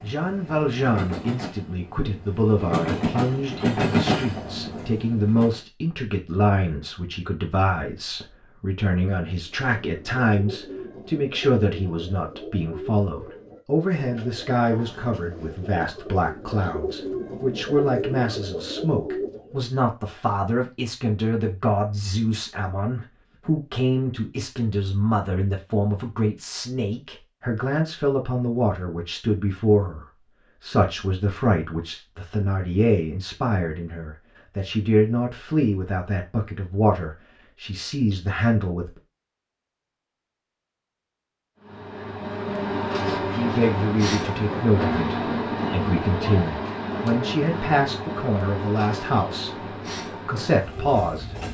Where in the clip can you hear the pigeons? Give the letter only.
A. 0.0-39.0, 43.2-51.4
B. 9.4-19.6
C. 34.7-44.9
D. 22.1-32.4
B.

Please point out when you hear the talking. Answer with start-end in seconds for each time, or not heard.
0.0-39.0, 43.2-51.4.